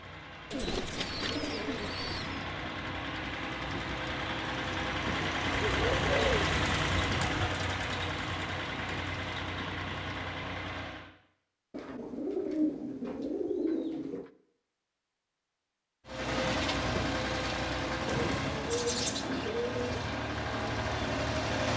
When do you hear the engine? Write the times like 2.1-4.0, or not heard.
0.0-11.1, 16.1-21.7.